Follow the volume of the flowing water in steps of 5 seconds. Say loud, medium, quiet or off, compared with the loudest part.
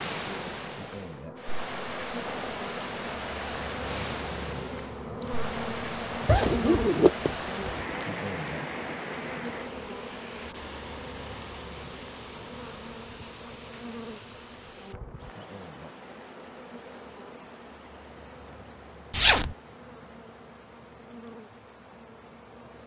loud, loud, medium, quiet, quiet.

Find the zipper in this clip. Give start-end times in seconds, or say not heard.
6.2-8.0, 19.1-19.6.